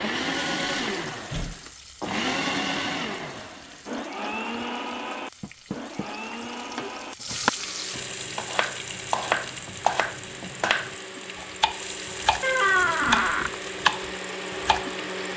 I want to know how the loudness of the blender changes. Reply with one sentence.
The volume of the blender goes down, then up.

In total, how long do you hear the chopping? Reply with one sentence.
You can hear the chopping for 8 seconds altogether.